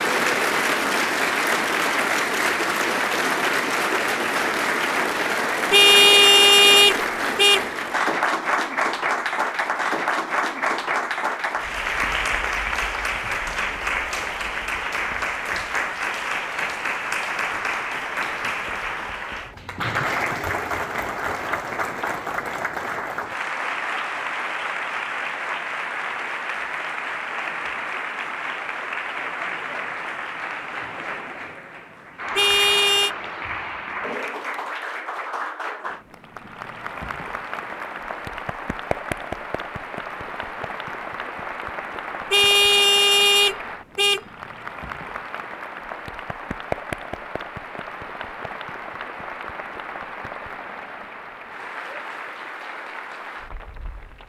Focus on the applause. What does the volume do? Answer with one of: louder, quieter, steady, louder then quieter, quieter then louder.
quieter.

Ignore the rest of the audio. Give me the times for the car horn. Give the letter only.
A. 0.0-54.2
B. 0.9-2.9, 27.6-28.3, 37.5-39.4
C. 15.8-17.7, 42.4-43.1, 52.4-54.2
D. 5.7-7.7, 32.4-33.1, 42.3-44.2
D.